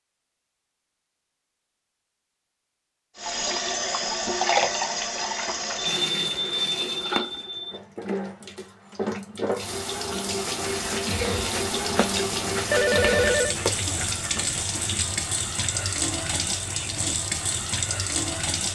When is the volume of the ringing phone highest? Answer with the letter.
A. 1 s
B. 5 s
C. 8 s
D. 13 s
D.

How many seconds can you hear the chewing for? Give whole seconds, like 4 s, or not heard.
5 s.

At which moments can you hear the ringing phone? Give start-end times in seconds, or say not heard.
5.8-7.8, 12.7-13.6.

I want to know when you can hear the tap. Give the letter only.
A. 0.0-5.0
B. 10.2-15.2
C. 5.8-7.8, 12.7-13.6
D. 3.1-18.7
D.